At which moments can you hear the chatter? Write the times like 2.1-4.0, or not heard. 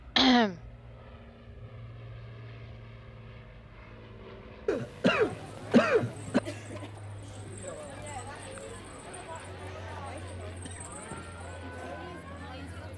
5.2-12.9.